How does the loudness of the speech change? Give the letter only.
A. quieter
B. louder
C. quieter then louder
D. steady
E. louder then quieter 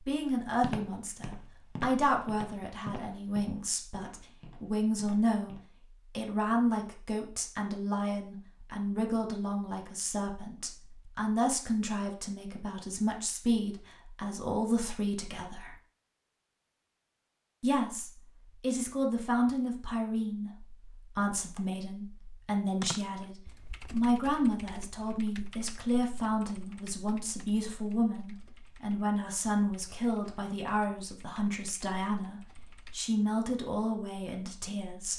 D.